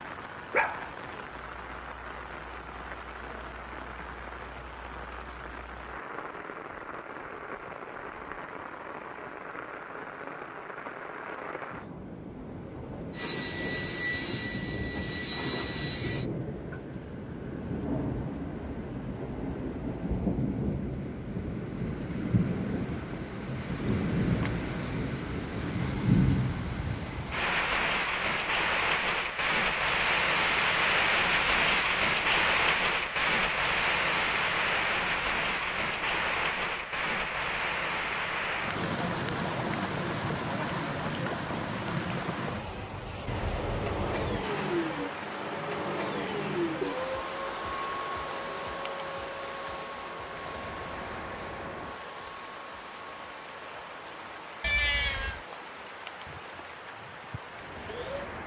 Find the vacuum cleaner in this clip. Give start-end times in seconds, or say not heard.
13.1-16.2, 43.2-58.4.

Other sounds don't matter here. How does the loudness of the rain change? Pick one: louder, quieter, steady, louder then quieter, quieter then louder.
louder then quieter.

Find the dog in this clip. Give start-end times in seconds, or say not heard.
0.5-0.9.